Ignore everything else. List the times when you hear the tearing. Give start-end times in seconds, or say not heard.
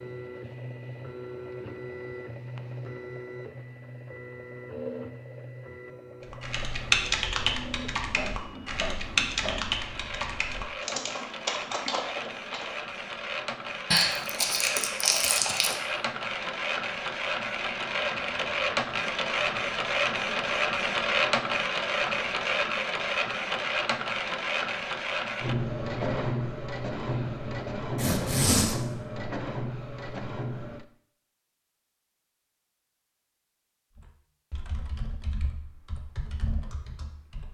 13.9-15.8, 27.9-28.8.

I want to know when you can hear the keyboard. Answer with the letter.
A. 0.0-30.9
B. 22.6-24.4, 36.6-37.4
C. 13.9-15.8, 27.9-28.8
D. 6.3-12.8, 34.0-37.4
D.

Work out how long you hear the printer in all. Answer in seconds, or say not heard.
31 s.